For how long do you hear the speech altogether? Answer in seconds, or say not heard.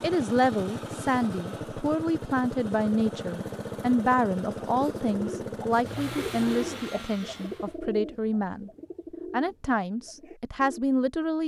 11 s.